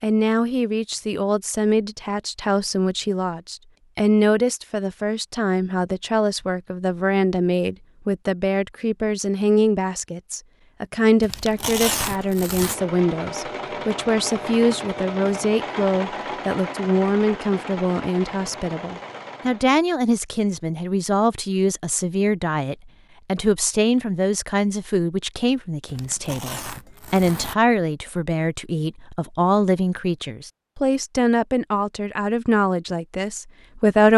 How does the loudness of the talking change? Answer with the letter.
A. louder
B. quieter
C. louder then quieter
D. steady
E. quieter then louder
D.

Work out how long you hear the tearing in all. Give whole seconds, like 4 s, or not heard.
3 s.